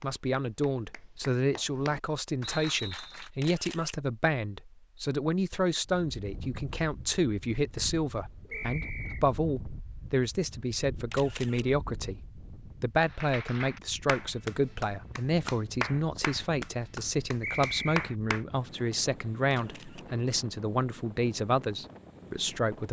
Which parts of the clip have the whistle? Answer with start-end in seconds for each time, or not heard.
2.4-3.3, 8.5-9.2, 17.4-17.9.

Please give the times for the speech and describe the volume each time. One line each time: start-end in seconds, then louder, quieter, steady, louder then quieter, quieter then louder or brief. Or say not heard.
0.0-22.8 steady.